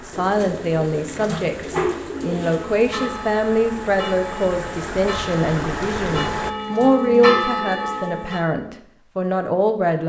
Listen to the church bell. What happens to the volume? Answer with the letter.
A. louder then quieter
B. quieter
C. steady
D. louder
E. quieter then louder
D.